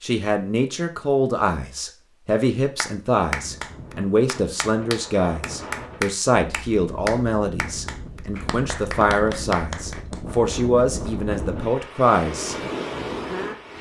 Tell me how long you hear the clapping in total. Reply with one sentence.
You can hear the clapping for 8 seconds altogether.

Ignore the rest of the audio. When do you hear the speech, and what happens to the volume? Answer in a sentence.
The speech can be heard from 0.0 to 12.6 s, at a steady volume.